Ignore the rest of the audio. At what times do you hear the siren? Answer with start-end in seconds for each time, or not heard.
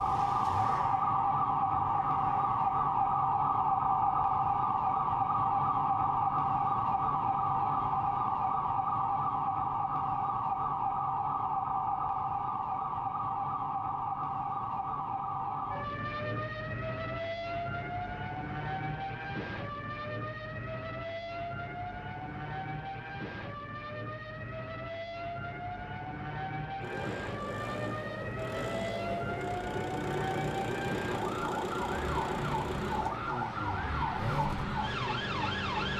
0.0-35.9.